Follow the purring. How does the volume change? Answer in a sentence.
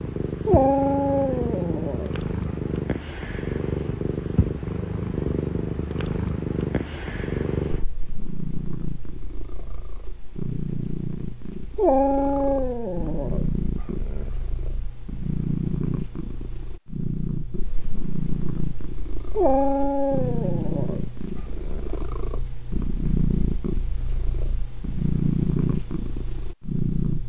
The volume of the purring stays about the same.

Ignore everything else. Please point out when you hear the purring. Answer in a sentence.
The purring can be heard from 0.0 to 27.2 s.